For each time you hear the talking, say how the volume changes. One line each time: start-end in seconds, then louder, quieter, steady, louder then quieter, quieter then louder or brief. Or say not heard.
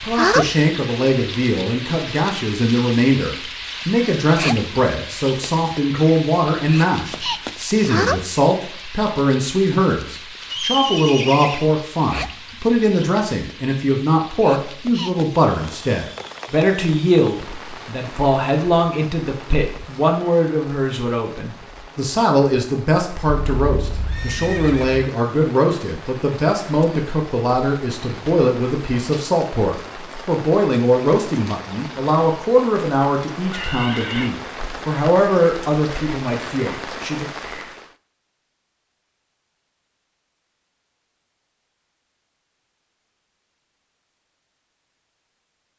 0.0-37.3 steady.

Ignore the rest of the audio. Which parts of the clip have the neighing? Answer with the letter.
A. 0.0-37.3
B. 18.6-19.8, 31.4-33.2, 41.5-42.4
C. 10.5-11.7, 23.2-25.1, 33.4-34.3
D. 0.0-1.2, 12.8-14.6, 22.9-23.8
C.